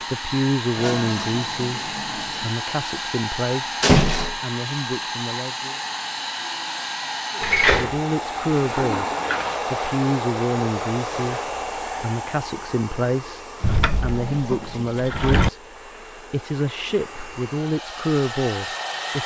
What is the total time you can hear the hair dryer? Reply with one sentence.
The hair dryer can be heard for 19 seconds in total.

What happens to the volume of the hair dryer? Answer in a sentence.
The volume of the hair dryer goes down.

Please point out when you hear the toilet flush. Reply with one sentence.
The toilet flush can be heard from 0.8 to 2.5 s, from 8.5 to 9.6 s and from 13.7 to 15.3 s.